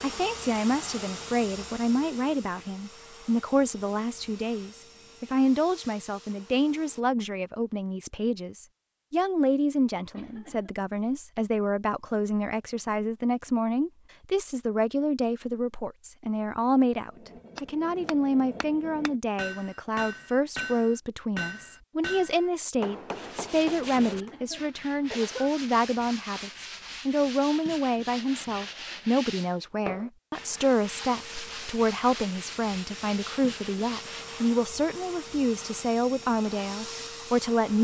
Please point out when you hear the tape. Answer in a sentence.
You can't hear the tape here.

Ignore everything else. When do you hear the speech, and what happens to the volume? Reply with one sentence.
You can hear the speech from 0.0 to 37.7 s, at a steady volume.